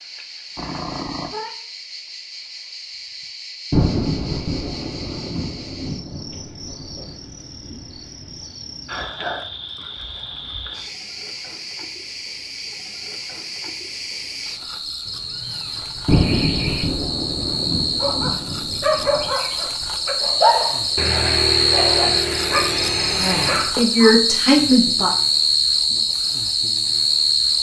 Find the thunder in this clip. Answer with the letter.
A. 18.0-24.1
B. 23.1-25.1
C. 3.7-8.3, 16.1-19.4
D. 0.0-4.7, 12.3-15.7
C.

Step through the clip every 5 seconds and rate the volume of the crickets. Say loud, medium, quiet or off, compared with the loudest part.
quiet, quiet, quiet, medium, loud, loud.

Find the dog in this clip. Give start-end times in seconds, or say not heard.
18.0-24.1.